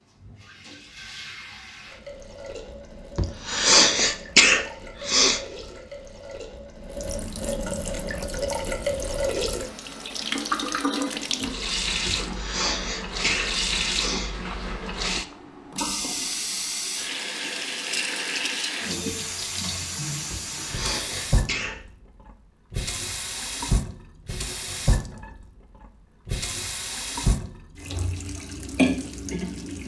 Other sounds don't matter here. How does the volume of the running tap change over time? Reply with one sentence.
The volume of the running tap goes up.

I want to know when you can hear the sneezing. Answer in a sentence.
The sneezing can be heard from 3.1 to 5.4 s, from 12.1 to 14.3 s and from 20.3 to 21.8 s.